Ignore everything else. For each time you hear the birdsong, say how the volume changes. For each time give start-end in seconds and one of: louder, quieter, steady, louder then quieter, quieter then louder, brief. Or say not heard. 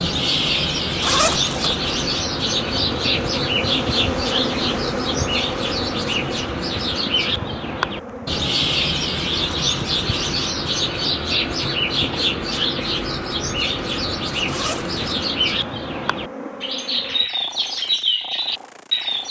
0.0-19.2 steady.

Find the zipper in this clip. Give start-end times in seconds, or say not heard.
1.0-1.7, 14.4-15.2.